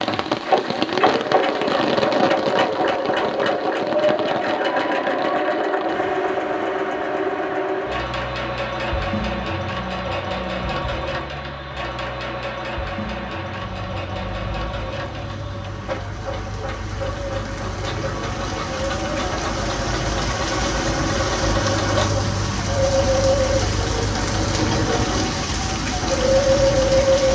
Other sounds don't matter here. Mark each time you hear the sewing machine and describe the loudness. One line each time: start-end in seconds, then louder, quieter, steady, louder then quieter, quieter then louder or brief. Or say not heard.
0.2-27.3 quieter then louder.